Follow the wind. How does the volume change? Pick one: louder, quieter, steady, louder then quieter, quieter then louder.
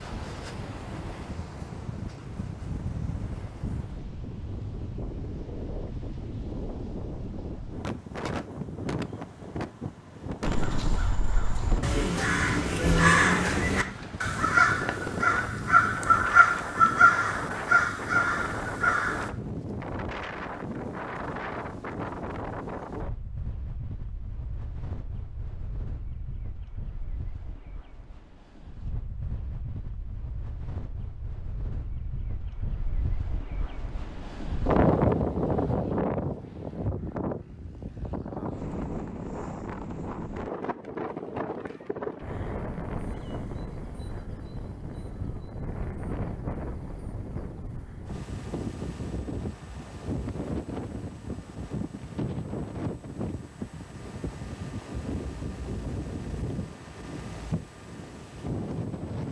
steady.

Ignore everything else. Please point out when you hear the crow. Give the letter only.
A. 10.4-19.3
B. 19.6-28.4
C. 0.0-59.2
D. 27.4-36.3
A.